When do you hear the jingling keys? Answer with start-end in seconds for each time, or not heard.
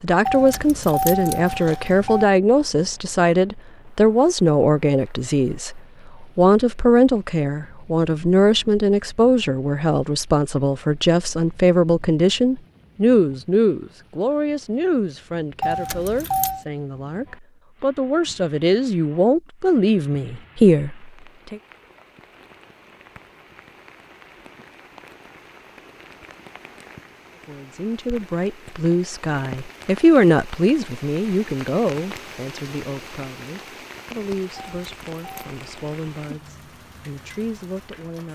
0.2-2.2, 15.6-16.6, 34.5-35.5.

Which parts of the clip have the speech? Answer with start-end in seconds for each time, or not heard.
0.0-21.6, 27.4-38.3.